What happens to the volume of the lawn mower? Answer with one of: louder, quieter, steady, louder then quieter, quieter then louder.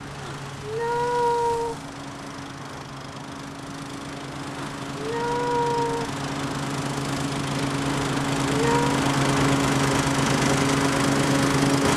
louder.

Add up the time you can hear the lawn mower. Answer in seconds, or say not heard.
12 s.